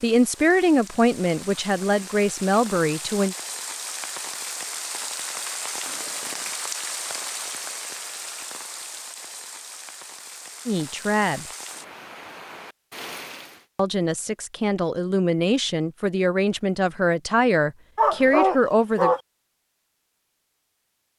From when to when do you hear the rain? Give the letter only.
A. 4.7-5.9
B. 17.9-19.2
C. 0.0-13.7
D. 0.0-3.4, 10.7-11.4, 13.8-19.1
C.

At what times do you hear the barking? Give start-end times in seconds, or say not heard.
17.9-19.2.